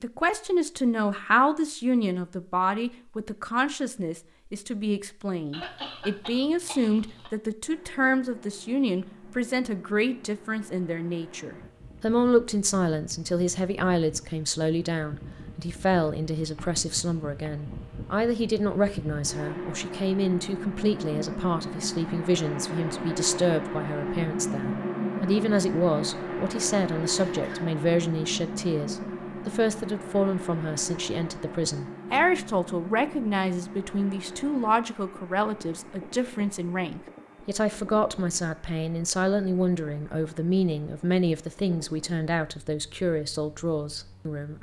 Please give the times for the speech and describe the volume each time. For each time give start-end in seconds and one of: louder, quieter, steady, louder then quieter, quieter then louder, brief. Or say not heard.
0.0-44.5 steady.